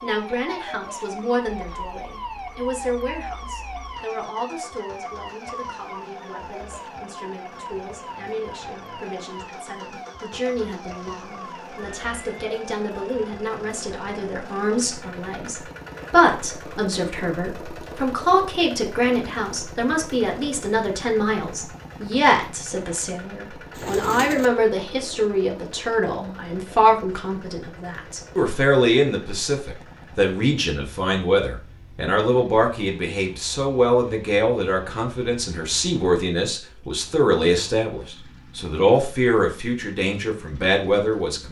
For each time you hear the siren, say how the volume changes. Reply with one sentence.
The siren can be heard from 0.0 to 13.3 s, getting quieter.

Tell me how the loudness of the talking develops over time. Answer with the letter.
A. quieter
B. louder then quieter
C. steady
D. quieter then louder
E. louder
E.